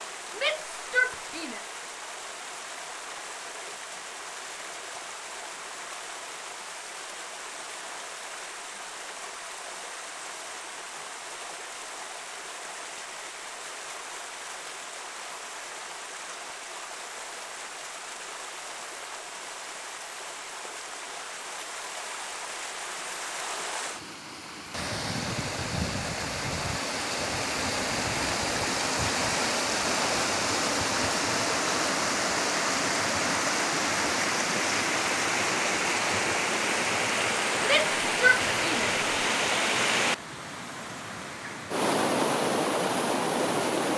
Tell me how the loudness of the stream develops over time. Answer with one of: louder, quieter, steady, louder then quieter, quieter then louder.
louder.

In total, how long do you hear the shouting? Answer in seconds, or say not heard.
3 s.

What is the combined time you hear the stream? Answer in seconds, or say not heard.
44 s.